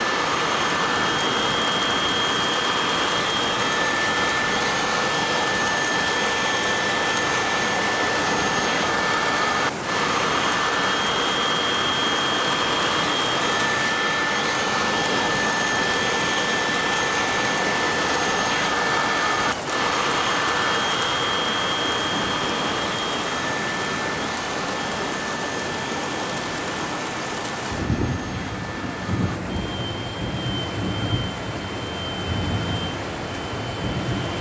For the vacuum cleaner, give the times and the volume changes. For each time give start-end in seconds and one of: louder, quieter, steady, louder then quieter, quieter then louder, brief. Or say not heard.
0.0-34.3 quieter.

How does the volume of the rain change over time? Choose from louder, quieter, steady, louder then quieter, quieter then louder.
steady.